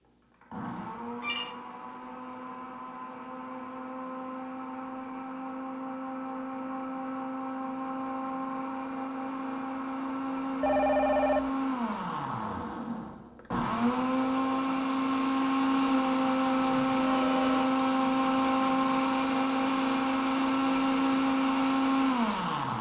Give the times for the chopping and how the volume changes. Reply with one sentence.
The chopping can't be heard in this clip.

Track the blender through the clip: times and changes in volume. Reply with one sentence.
The blender can be heard from 0.0 to 22.7 s, getting louder.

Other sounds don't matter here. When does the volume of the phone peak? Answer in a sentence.
The loudest moment of the phone is at 11 seconds.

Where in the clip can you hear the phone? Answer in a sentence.
The phone can be heard from 0.8 to 1.6 s, from 10.6 to 11.5 s and from 16.6 to 17.7 s.